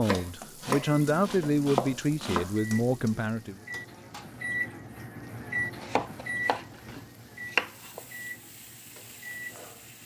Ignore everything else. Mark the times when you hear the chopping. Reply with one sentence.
You can hear the chopping from 0.0 to 2.5 s and from 5.8 to 8.0 s.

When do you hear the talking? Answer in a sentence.
The talking can be heard from 0.0 to 3.5 s.